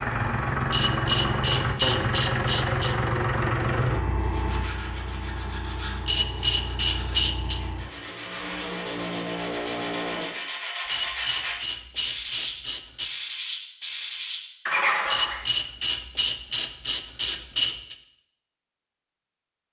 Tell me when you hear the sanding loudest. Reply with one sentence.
The loudest moment of the sanding is at 15 seconds.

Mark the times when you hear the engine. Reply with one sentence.
You can hear the engine from 0.0 to 10.3 s.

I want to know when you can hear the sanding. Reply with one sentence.
You can hear the sanding from 4.2 to 15.4 s.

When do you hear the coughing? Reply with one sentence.
The coughing can't be heard in this clip.